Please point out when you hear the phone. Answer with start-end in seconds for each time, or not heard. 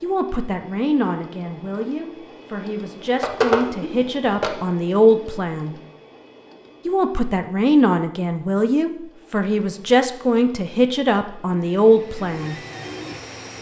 3.2-4.5.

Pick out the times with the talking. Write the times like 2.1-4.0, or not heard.
0.0-5.8, 6.8-12.6.